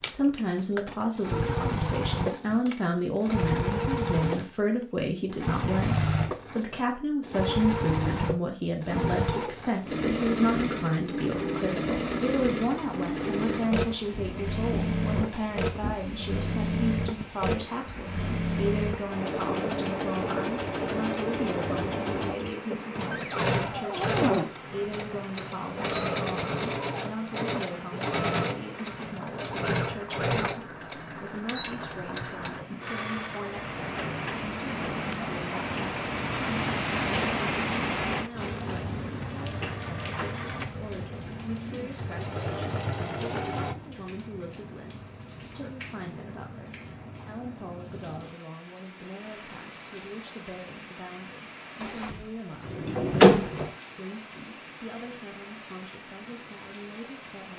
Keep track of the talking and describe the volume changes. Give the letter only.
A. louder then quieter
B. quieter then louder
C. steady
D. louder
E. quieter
E.